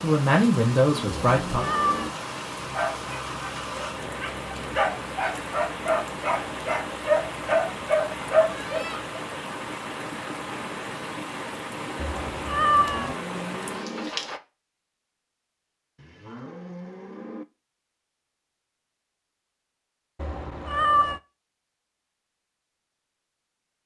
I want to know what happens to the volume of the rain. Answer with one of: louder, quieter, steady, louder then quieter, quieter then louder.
steady.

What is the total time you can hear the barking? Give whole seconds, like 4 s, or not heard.
7 s.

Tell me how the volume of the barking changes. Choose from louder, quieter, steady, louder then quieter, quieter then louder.
louder.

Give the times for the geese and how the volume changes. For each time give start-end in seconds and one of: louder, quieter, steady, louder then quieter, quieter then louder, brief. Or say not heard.
not heard.